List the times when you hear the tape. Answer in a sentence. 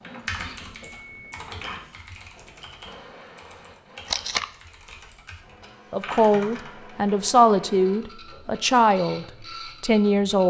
The tape can be heard from 4.0 to 4.5 s.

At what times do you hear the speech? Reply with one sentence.
You can hear the speech from 5.9 to 10.4 s.